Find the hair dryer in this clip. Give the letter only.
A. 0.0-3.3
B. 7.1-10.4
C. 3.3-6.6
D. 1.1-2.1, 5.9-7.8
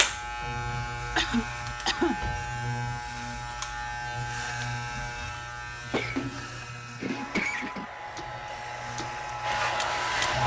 B.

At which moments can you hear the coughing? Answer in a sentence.
The coughing can be heard from 1.1 to 2.1 s and from 5.9 to 7.8 s.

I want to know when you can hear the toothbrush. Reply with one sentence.
You can't hear the toothbrush here.